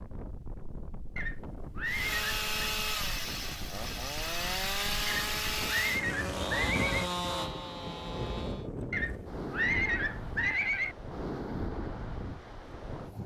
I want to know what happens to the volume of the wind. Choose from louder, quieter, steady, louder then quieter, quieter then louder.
louder.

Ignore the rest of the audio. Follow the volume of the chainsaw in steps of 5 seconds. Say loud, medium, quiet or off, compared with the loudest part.
loud, loud, off.